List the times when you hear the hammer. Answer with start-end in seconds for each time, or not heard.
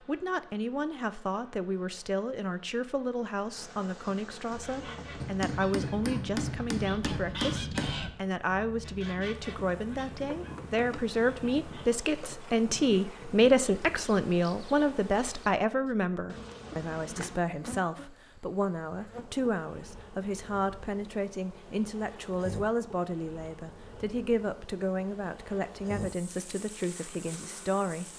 5.2-8.0.